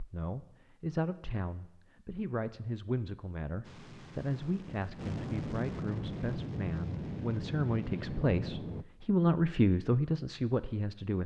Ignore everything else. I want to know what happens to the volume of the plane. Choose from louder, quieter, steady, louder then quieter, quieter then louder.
louder.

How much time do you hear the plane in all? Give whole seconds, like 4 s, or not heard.
5 s.